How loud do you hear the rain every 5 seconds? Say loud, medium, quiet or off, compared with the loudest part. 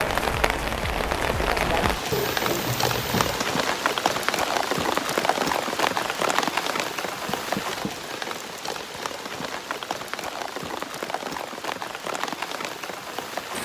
loud, loud, medium.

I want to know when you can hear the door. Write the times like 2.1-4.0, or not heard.
2.1-3.5, 7.2-8.0.